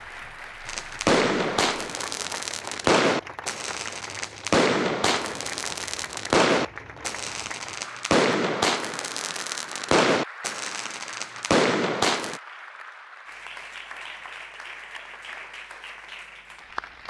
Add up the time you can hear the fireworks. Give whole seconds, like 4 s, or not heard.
12 s.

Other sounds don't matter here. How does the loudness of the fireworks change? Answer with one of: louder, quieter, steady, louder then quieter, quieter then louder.
steady.